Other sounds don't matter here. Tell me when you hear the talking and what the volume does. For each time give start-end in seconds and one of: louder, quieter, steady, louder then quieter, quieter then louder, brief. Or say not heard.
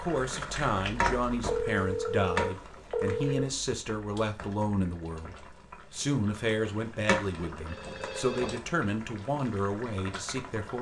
0.0-10.7 steady.